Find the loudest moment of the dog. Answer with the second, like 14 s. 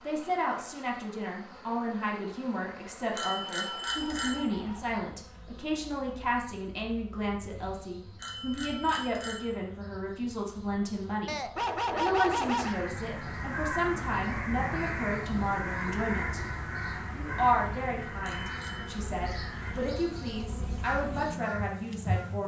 12 s.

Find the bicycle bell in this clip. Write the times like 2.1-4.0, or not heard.
3.1-4.5, 8.2-9.5, 18.2-19.0.